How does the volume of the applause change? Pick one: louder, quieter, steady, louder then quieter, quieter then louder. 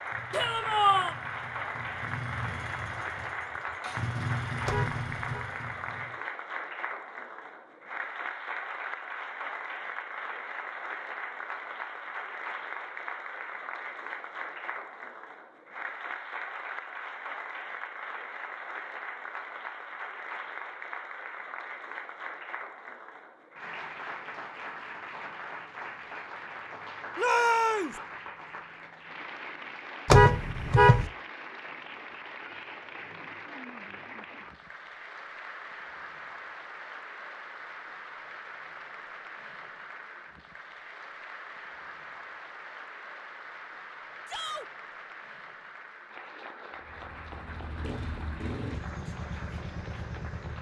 quieter.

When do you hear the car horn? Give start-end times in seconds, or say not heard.
4.7-5.5, 30.1-31.1.